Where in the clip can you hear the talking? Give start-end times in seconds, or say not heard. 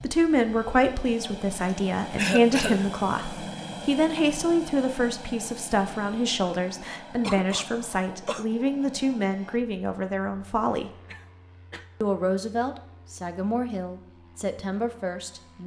0.0-10.9, 12.0-15.6.